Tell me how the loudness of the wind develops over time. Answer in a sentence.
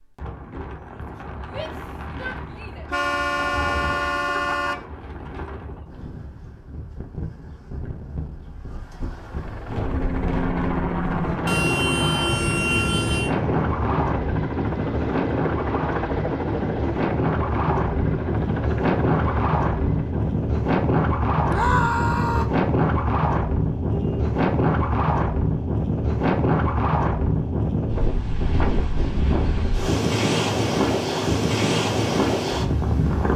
The volume of the wind goes up.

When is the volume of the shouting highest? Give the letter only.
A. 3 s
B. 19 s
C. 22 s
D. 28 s
C.